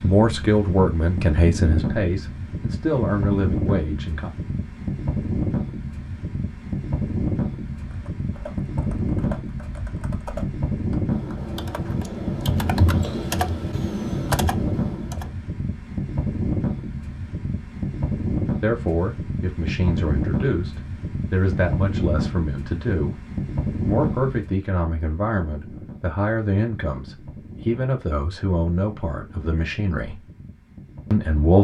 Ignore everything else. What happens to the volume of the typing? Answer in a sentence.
The loudness of the typing goes up.